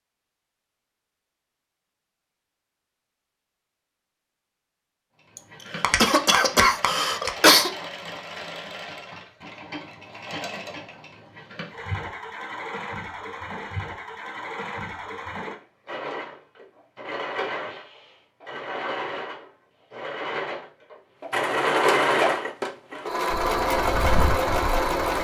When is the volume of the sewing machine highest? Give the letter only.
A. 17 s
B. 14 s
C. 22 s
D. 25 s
C.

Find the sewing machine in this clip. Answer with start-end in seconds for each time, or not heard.
5.2-25.1.